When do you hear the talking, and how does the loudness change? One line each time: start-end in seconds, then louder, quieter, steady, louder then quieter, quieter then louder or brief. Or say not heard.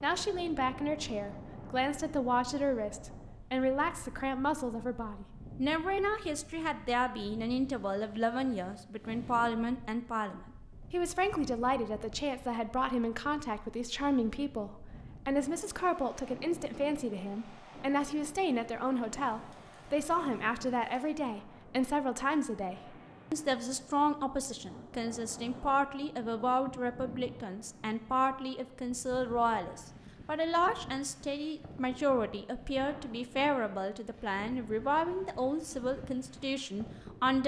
0.0-37.4 steady.